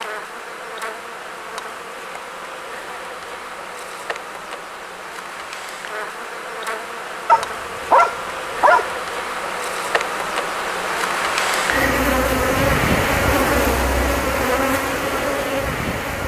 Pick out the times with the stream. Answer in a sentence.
The stream can't be heard in this clip.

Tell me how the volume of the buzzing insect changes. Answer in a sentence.
The volume of the buzzing insect goes up.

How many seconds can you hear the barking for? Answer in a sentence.
You can hear the barking for 2 seconds altogether.